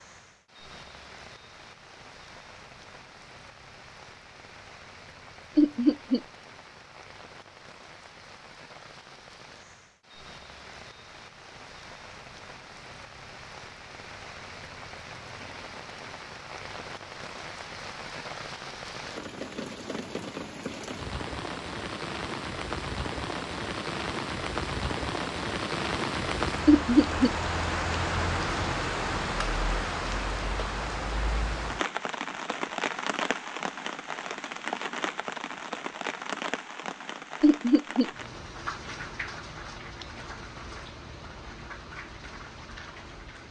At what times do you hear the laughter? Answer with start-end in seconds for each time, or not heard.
5.5-6.2, 26.6-27.3, 37.4-38.1.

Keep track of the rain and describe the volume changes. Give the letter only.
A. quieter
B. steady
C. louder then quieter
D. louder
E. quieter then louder
C.